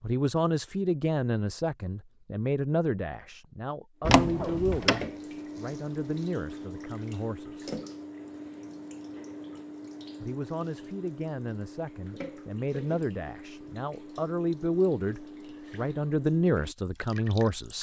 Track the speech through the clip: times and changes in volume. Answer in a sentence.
The speech can be heard from 0.0 to 7.8 s, getting quieter; and from 10.2 to 17.7 s, getting louder.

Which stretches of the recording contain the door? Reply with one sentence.
The door can be heard from 4.0 to 5.0 s.